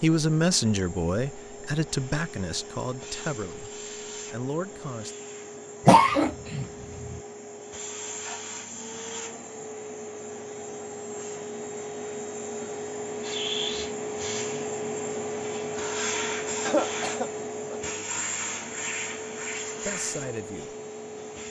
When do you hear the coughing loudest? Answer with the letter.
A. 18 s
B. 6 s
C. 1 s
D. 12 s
B.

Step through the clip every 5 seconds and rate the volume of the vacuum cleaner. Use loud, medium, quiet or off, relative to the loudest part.
medium, medium, loud, loud, medium.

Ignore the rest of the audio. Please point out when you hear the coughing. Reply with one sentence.
You can hear the coughing from 5.8 to 7.2 s and from 16.6 to 17.8 s.